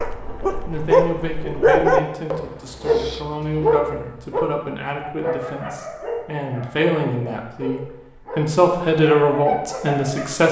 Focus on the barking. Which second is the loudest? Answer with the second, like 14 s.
2 s.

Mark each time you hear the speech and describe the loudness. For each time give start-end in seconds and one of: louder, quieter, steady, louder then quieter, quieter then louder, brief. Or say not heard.
0.7-10.4 louder.